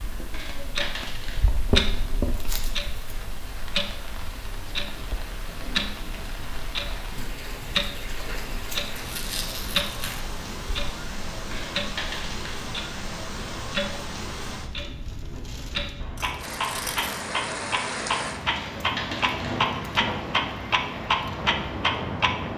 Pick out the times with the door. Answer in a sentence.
You can't hear the door here.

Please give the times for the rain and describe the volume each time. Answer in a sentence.
You can hear the rain from 0.0 to 22.5 s, getting louder.